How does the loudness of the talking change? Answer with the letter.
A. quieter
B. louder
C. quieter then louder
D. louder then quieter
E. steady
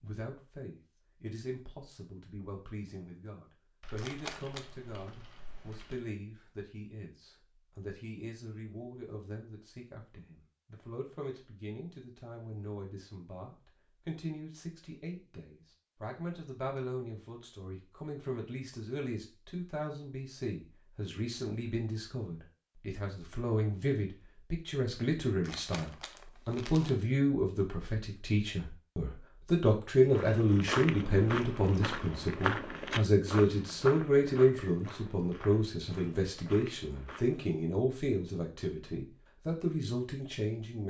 B.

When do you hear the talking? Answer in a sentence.
The talking can be heard from 0.0 to 40.8 s.